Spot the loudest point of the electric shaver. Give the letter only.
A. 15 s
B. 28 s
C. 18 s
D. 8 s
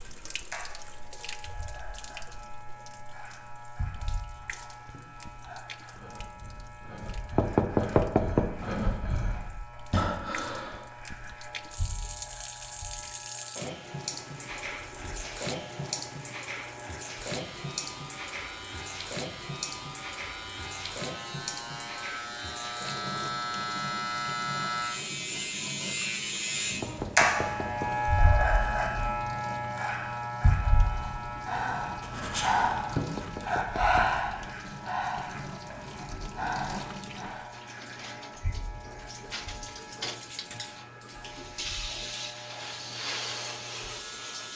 B.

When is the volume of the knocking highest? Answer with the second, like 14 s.
8 s.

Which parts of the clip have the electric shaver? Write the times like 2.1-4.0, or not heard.
0.0-44.5.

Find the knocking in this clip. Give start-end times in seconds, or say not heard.
7.3-8.6, 26.8-27.9, 33.0-34.1.